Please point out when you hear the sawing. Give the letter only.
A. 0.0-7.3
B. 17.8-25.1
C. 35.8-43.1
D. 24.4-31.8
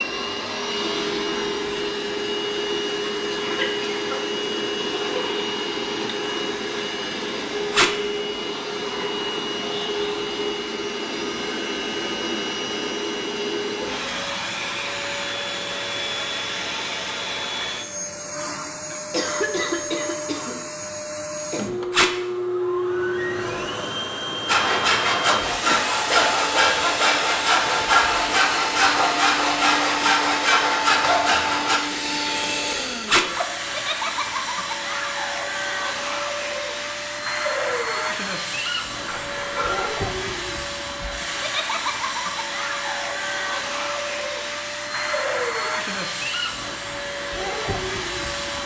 D.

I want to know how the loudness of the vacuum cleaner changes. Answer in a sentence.
The volume of the vacuum cleaner stays about the same.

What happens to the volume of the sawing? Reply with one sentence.
The volume of the sawing stays about the same.